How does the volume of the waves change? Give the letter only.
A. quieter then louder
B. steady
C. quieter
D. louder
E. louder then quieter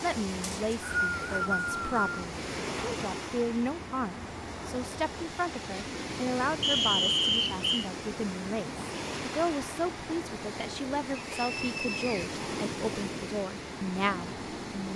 B.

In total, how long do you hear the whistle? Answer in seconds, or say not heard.
4 s.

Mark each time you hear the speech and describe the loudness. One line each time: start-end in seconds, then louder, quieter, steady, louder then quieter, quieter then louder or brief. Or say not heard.
0.0-14.9 steady.